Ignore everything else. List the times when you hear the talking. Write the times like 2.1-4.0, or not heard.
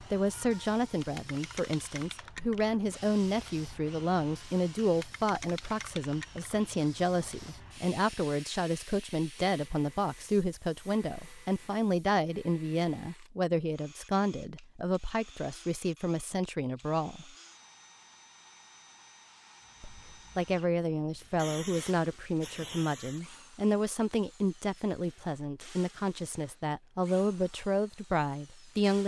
0.0-17.3, 19.8-29.0.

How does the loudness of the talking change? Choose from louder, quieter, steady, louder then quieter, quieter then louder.
steady.